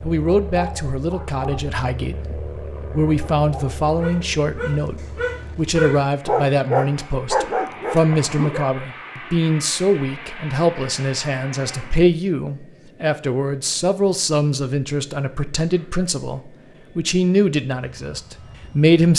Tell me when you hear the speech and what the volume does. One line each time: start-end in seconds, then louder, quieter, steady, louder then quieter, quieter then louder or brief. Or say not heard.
0.0-19.1 steady.